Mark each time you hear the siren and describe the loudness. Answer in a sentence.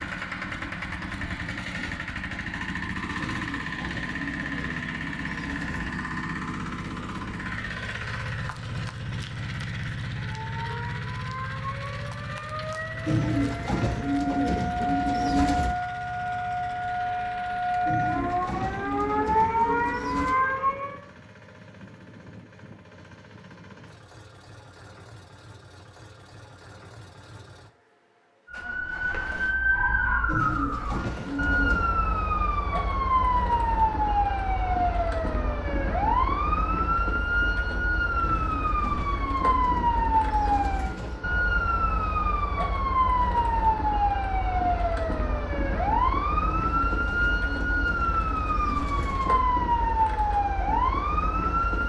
You can hear the siren from 10.2 to 21.0 s, getting louder; and from 28.4 to 51.8 s, at a steady volume.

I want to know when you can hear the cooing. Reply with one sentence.
You can hear the cooing from 3.1 to 6.0 s, from 13.1 to 15.8 s, from 17.9 to 20.4 s, from 30.2 to 31.9 s, from 38.2 to 41.2 s and from 46.5 to 49.4 s.